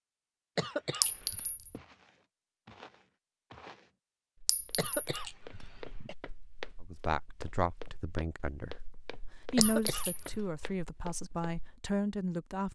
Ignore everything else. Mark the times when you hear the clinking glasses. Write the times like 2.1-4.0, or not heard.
1.0-1.7, 4.5-5.2, 9.6-10.3.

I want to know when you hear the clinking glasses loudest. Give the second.
1 s.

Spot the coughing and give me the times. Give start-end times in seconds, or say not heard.
0.6-1.4, 4.8-6.2, 9.6-10.4.